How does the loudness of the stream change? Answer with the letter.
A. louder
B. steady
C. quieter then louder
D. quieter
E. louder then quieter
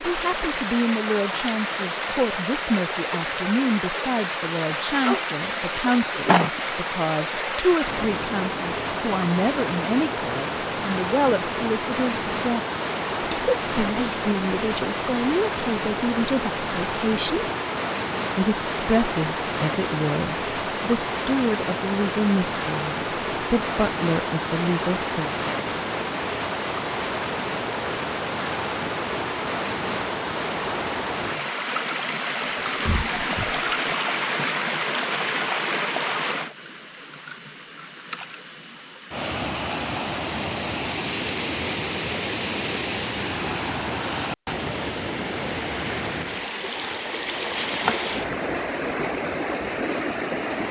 B.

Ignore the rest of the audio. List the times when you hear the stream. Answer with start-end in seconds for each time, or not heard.
0.0-50.6.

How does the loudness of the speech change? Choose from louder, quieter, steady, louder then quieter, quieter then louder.
steady.